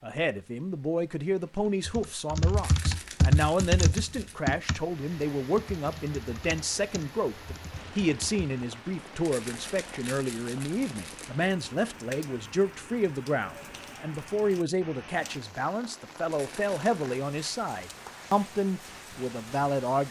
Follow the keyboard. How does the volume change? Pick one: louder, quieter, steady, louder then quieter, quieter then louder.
quieter.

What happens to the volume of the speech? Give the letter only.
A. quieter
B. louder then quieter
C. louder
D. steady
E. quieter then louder
D.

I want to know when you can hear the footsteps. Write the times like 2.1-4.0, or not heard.
not heard.